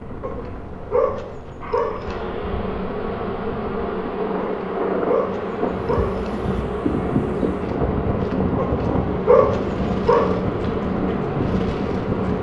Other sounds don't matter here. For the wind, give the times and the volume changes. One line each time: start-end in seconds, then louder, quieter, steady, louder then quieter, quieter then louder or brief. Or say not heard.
0.0-12.3 louder.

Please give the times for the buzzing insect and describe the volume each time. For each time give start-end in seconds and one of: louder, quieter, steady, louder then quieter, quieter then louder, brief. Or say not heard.
0.0-12.3 louder.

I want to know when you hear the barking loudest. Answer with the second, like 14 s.
9 s.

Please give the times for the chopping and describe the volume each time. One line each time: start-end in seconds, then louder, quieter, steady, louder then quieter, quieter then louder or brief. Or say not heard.
not heard.